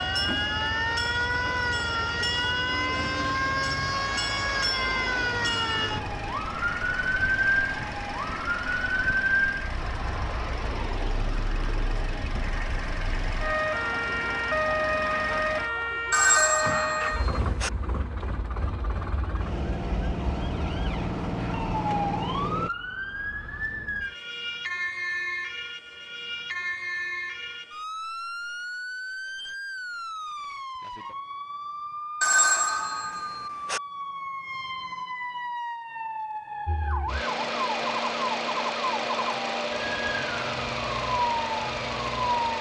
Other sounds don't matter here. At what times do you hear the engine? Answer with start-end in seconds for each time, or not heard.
0.0-22.7, 36.6-42.5.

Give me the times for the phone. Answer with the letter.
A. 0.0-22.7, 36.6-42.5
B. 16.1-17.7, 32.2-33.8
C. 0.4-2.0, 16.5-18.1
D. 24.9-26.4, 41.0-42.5
B.